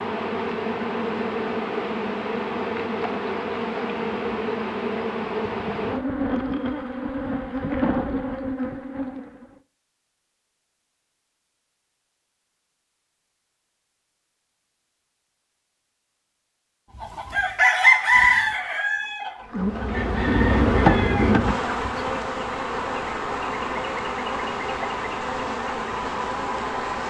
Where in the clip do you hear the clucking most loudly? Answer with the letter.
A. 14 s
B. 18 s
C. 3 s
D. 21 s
B.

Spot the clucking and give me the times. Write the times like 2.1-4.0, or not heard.
16.9-22.2.